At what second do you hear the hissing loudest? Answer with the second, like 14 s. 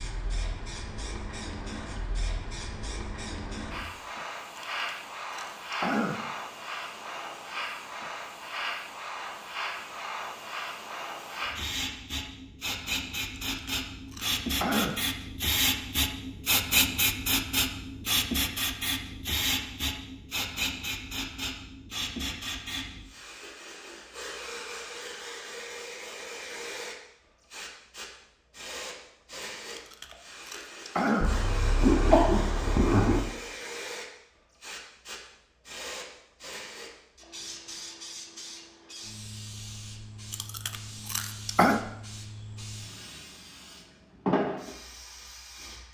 17 s.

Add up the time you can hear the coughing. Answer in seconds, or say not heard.
2 s.